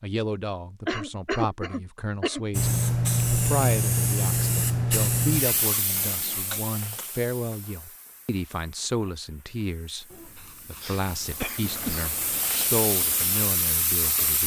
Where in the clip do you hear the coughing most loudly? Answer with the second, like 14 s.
1 s.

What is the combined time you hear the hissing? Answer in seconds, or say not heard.
12 s.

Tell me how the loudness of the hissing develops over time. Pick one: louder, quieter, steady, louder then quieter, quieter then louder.
quieter then louder.